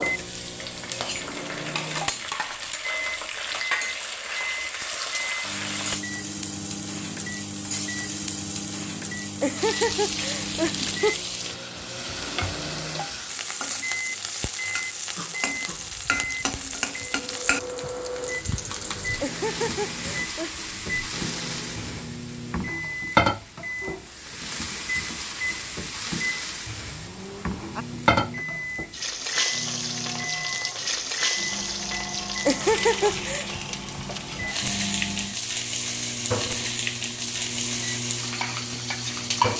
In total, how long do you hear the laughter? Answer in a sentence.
The laughter can be heard for 4 seconds in total.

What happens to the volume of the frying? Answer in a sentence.
The loudness of the frying stays about the same.